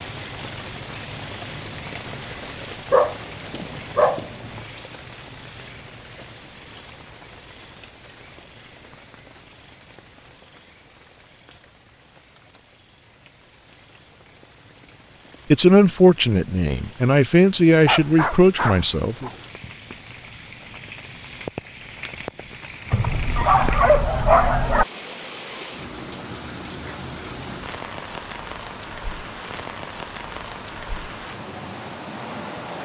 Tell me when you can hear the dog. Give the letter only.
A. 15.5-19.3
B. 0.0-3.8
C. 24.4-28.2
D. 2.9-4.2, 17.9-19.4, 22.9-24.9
D.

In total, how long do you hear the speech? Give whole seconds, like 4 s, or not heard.
4 s.